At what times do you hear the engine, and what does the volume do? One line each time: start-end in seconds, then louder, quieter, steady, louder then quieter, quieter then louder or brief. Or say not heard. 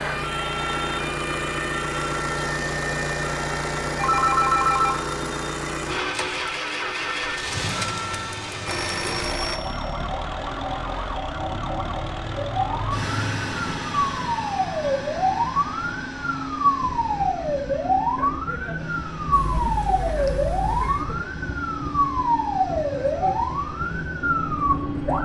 0.0-25.2 quieter.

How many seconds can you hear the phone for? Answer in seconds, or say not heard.
4 s.